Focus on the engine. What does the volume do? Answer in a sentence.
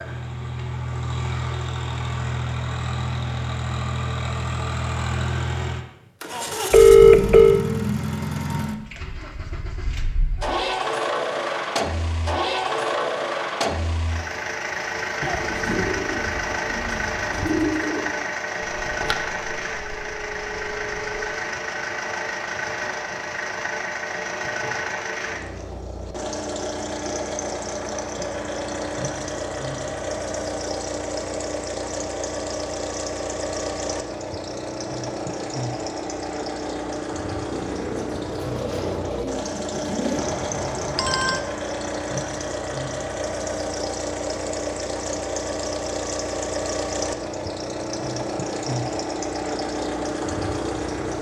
The volume of the engine stays about the same.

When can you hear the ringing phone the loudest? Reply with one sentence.
The volume of the ringing phone peaks at 7 seconds.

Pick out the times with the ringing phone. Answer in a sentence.
The ringing phone can be heard from 6.7 to 7.7 s, from 18.8 to 21.0 s and from 40.1 to 41.4 s.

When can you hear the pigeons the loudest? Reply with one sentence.
The volume of the pigeons peaks at 18 seconds.